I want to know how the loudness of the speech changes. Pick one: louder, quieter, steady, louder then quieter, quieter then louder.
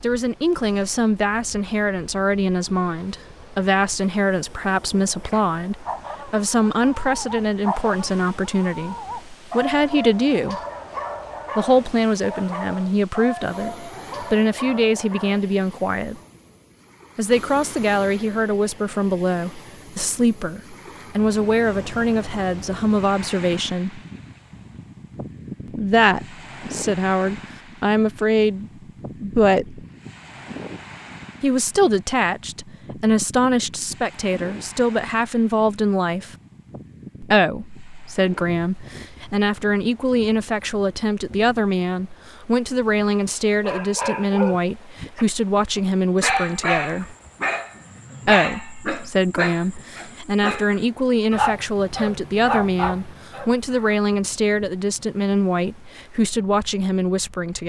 steady.